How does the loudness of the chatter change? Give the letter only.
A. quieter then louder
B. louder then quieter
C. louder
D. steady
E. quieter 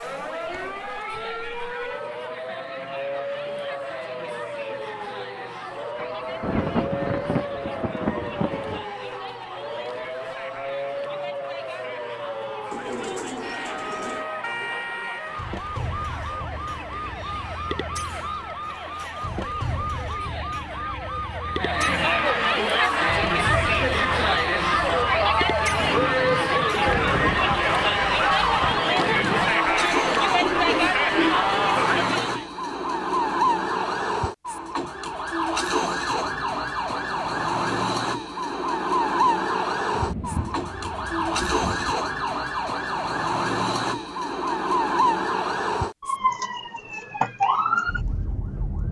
C.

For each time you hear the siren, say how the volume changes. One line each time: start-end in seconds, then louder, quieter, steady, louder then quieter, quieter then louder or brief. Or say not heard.
0.0-48.8 louder.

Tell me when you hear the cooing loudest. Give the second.
31 s.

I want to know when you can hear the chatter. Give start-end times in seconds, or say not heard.
0.0-32.5.